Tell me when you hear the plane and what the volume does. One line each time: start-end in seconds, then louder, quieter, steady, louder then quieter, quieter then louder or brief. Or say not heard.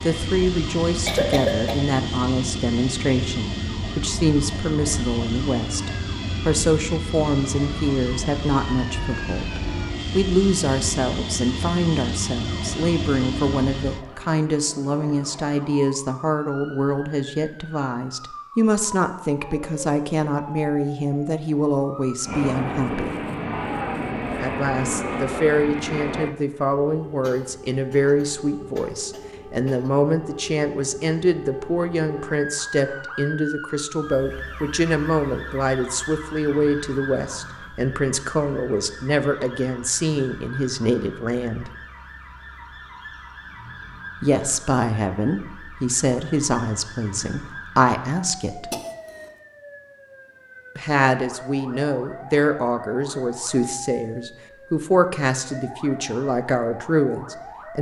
0.0-14.1 steady
22.2-26.4 steady.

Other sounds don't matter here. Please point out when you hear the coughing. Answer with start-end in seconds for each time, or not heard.
1.1-1.8, 27.2-29.9, 48.7-49.2.